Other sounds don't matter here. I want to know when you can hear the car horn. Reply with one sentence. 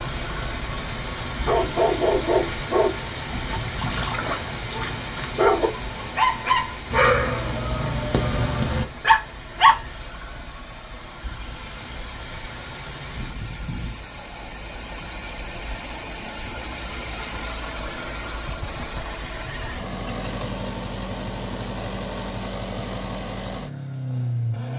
The car horn can't be heard in this clip.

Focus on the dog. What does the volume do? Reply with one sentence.
The loudness of the dog goes down, then up.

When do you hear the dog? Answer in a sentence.
The dog can be heard from 1.4 to 9.8 s.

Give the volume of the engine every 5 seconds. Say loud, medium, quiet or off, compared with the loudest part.
medium, medium, medium, loud, loud.